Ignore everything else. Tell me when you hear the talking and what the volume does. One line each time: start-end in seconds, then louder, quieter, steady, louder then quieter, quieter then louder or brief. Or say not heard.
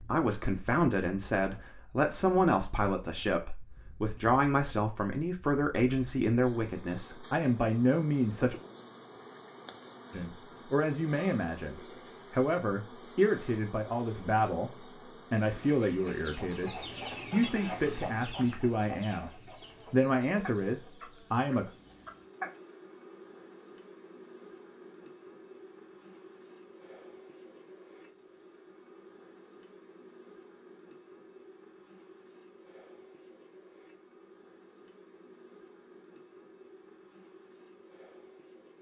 0.1-8.6 steady
10.1-21.7 steady.